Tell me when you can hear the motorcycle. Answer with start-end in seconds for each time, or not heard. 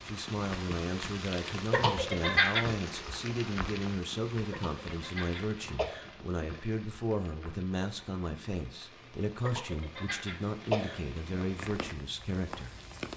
not heard.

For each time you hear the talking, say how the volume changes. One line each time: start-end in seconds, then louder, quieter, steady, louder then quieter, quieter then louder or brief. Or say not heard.
0.0-12.7 steady.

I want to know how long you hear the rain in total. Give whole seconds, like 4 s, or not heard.
13 s.